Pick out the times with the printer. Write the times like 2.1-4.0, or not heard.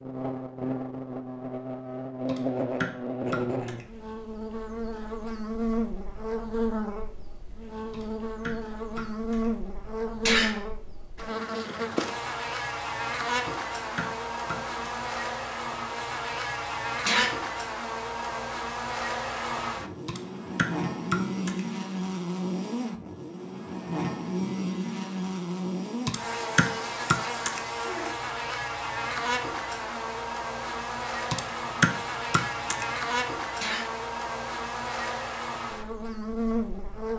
not heard.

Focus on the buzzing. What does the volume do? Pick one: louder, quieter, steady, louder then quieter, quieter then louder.
steady.